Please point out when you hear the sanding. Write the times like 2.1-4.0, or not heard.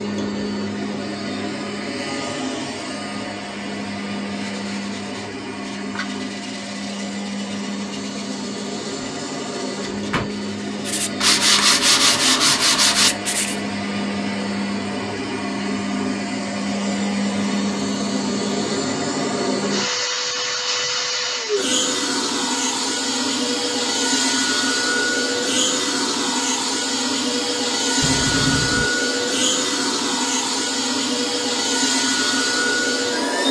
4.2-13.6.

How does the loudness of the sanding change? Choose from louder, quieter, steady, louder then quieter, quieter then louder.
louder.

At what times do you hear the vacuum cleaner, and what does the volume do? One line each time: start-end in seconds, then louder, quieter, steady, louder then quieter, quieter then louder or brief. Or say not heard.
0.0-33.4 louder.